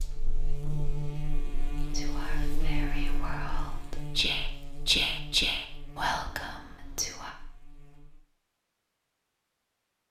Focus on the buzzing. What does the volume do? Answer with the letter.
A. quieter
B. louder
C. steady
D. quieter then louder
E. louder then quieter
A.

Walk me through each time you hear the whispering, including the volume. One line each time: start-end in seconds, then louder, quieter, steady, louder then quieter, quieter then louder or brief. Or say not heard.
1.9-7.3 louder then quieter.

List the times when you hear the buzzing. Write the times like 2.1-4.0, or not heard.
0.0-8.2.